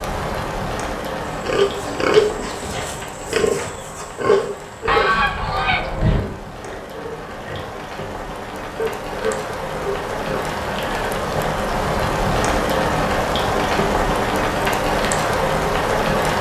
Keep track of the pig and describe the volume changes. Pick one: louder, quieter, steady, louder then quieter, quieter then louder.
quieter then louder.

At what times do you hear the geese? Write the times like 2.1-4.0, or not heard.
4.8-6.2.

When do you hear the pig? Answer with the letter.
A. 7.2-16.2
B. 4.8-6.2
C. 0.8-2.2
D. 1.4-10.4
D.